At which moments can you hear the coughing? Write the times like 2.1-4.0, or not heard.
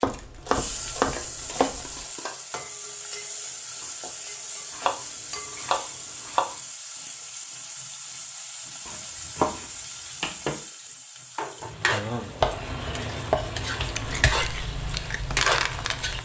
not heard.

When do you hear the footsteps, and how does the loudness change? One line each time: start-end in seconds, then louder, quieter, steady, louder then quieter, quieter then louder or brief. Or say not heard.
not heard.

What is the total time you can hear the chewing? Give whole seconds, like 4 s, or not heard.
2 s.